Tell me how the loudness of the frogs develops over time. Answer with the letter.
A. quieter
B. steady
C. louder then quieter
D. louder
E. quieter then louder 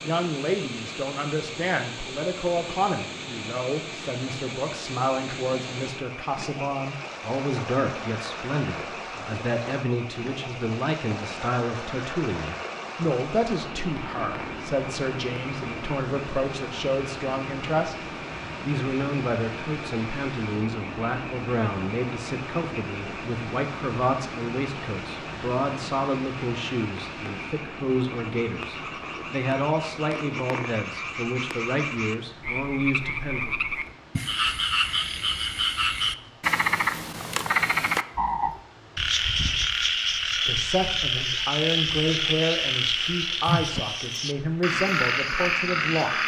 D.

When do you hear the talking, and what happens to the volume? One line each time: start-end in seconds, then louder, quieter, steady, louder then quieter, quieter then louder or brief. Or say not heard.
0.0-33.5 steady
40.4-46.2 steady.